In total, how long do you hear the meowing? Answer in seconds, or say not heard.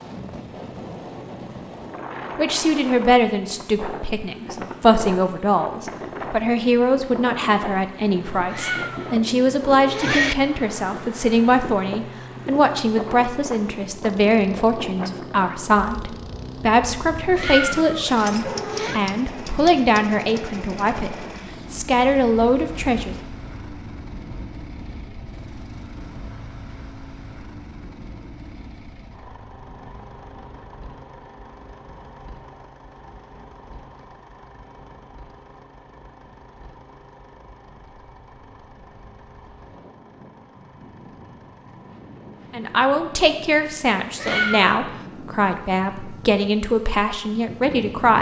4 s.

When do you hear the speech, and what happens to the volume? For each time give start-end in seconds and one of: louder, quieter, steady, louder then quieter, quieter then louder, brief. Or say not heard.
2.4-23.1 steady
42.5-48.1 steady.